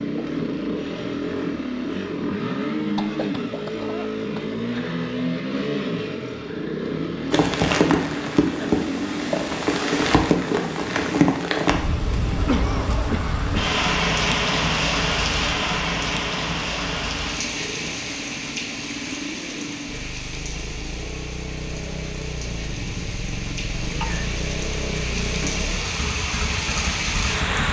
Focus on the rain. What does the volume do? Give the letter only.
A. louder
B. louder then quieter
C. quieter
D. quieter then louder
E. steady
D.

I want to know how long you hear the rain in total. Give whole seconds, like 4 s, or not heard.
20 s.